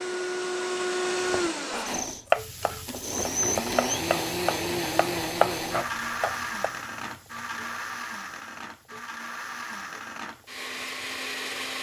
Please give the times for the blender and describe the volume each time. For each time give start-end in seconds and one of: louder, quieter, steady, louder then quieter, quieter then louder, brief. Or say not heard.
0.0-11.7 quieter.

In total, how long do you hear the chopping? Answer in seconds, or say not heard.
6 s.